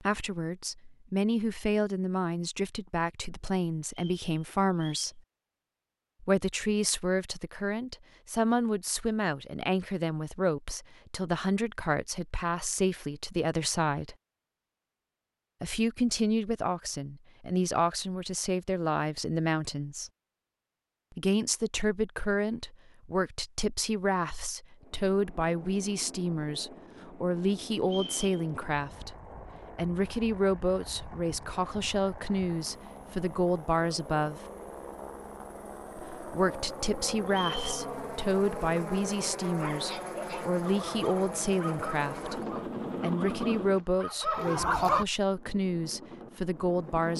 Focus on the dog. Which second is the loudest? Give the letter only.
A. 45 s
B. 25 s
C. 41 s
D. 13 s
A.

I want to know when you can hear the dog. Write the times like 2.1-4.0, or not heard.
39.5-45.0.